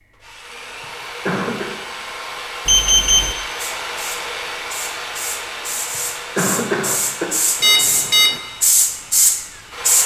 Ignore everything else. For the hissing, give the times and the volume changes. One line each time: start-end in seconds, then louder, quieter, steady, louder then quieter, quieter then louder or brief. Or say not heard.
3.5-10.0 louder.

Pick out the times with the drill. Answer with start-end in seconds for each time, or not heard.
0.0-10.0.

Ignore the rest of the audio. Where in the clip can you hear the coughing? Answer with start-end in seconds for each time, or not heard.
1.2-1.7, 6.3-7.3.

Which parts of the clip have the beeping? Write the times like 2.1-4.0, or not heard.
2.6-3.4, 7.6-8.4.